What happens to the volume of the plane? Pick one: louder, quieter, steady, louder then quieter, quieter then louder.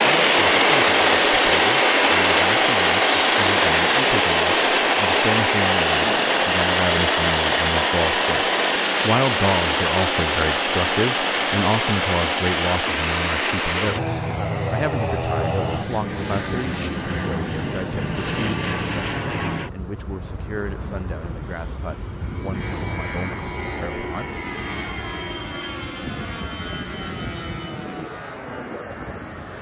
quieter.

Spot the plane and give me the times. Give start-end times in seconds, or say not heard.
0.0-29.5.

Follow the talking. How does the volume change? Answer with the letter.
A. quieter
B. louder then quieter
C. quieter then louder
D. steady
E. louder
B.